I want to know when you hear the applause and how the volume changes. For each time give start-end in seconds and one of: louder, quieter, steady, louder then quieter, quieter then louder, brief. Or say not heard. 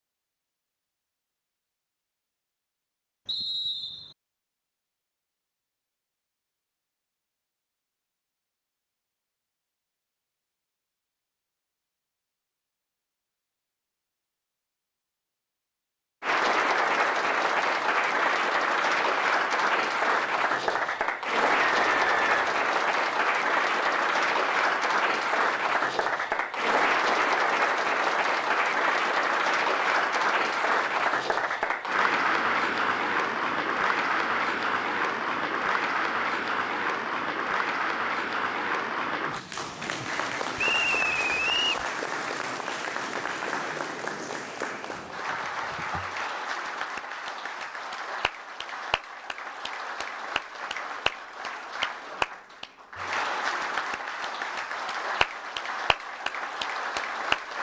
16.2-57.5 quieter.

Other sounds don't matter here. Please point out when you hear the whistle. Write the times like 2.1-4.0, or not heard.
3.2-4.2, 21.6-22.6, 40.5-41.9.